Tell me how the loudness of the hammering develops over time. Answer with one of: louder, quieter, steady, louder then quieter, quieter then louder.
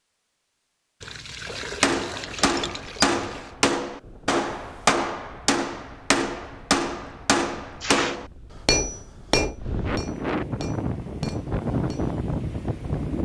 quieter.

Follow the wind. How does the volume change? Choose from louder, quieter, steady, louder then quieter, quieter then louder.
louder.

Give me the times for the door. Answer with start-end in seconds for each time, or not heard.
not heard.